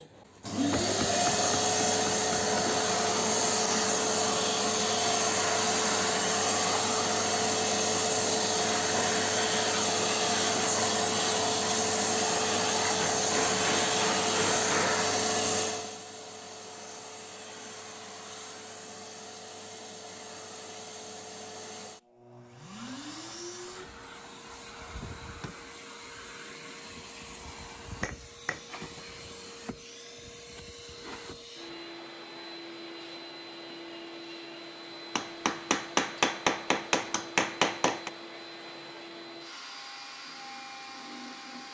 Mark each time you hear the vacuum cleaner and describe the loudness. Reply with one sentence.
The vacuum cleaner can be heard from 0.0 to 41.6 s, getting quieter.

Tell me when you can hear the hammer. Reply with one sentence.
The hammer can be heard from 0.8 to 2.6 s, from 12.9 to 14.9 s, from 28.0 to 29.0 s and from 35.1 to 38.1 s.